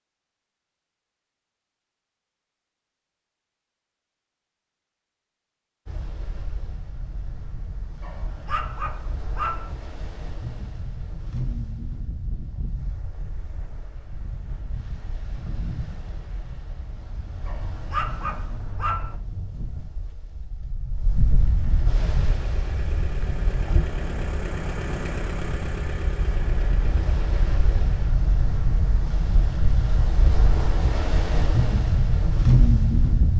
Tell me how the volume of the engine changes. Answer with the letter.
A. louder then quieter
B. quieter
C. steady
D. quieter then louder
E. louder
A.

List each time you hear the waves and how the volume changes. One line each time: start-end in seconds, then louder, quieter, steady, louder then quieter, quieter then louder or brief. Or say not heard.
5.8-33.3 louder.